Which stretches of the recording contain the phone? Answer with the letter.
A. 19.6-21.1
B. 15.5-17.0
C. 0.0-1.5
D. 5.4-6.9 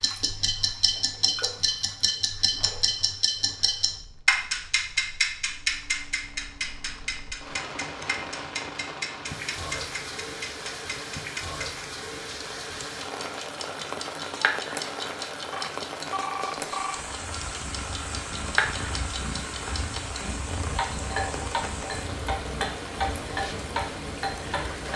B.